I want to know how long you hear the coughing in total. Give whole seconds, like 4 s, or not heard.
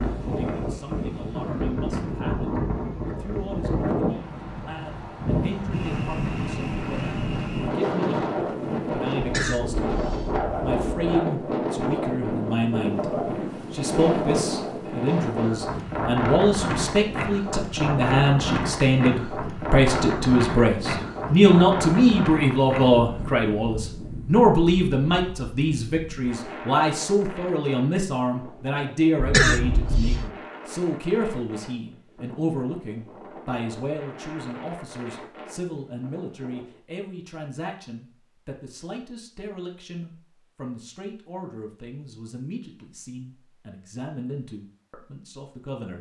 3 s.